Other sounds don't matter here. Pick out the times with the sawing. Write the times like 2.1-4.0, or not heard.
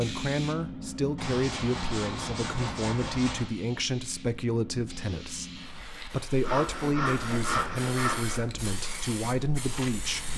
1.1-3.5, 6.4-8.4.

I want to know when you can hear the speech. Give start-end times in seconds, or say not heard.
0.0-10.3.